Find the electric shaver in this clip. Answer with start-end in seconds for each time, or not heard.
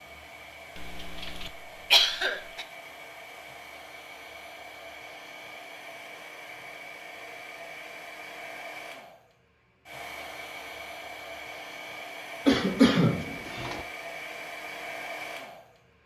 not heard.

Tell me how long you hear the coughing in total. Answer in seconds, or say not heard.
3 s.